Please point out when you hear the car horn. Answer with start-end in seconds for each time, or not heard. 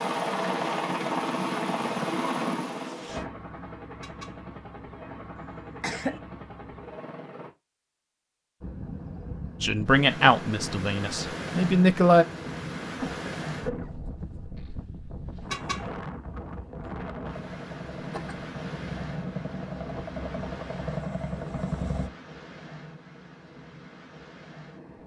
4.0-4.4, 15.5-15.9.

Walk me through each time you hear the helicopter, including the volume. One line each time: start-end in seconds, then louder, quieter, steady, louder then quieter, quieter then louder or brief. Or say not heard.
0.0-7.5 quieter
17.1-22.1 louder.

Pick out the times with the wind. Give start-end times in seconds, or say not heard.
8.6-25.0.